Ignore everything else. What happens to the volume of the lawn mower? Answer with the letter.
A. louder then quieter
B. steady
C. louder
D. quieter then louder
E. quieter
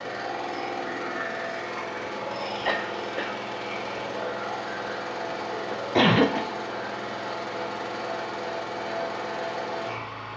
B.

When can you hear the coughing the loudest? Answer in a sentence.
The volume of the coughing peaks at 6 seconds.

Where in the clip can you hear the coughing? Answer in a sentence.
The coughing can be heard from 2.0 to 3.4 s and from 5.7 to 6.4 s.